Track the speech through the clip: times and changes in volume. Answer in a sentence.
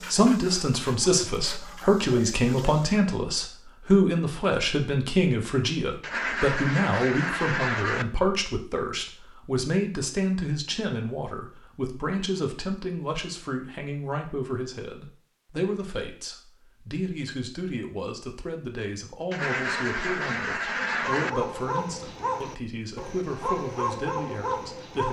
You can hear the speech from 0.0 to 25.0 s, getting quieter.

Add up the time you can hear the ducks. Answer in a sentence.
The ducks can be heard for 4 seconds in total.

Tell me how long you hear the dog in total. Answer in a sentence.
You can hear the dog for 7 seconds altogether.